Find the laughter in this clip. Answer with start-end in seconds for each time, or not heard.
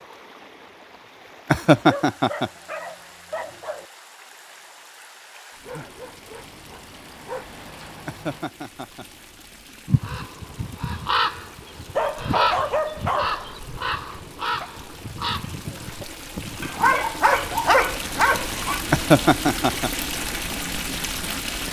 1.5-2.5, 8.1-9.1, 18.9-19.9.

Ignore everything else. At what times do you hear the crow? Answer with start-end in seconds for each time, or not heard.
9.8-16.9.